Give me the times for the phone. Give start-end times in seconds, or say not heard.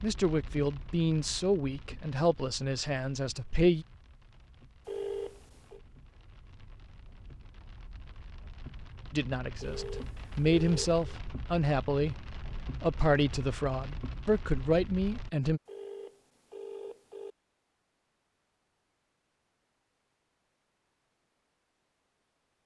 4.8-5.8, 9.6-10.9, 15.7-17.4.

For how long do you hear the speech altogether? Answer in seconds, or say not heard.
10 s.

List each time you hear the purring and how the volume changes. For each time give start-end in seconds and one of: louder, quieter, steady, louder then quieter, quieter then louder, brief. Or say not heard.
not heard.